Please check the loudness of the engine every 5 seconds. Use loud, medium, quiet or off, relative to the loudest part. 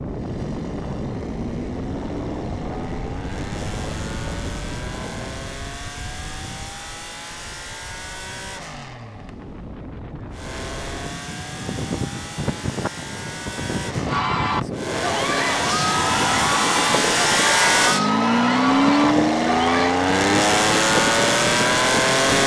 quiet, quiet, quiet, loud, loud.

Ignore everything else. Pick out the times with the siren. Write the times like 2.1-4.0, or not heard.
not heard.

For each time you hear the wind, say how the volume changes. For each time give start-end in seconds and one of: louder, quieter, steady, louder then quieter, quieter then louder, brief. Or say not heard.
0.0-22.4 quieter then louder.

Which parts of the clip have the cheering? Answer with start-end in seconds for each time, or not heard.
14.1-19.9.